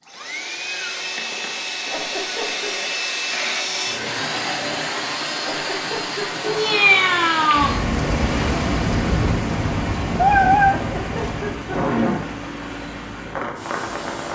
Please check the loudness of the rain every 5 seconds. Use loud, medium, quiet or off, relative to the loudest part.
off, loud, loud.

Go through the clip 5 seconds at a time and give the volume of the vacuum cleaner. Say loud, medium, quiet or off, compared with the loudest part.
loud, loud, medium.